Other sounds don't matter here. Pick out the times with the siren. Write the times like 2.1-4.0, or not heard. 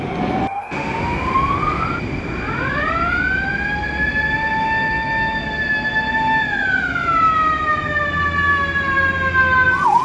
0.0-9.9.